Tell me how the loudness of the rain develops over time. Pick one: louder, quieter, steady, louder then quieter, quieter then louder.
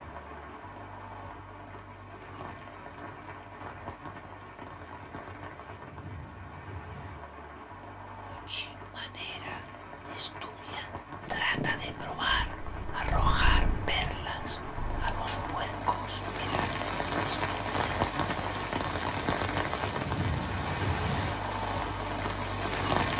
louder.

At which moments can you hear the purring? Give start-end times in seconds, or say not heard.
11.2-15.8.